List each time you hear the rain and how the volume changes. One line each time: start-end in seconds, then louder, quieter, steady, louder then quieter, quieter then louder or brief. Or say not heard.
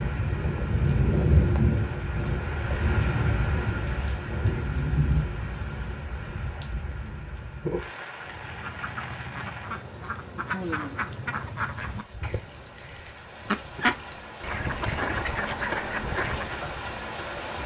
0.0-17.6 quieter then louder.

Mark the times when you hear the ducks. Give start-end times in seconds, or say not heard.
8.2-16.6.